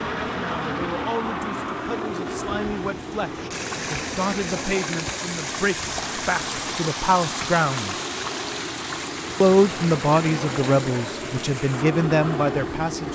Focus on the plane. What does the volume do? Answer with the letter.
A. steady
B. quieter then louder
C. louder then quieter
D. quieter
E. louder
B.